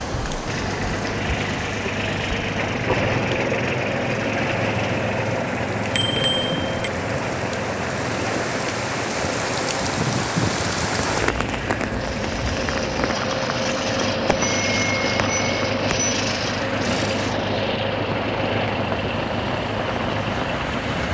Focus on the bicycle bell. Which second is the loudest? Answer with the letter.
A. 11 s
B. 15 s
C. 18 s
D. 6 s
D.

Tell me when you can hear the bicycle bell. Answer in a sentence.
You can hear the bicycle bell from 5.9 to 6.9 s and from 14.2 to 16.1 s.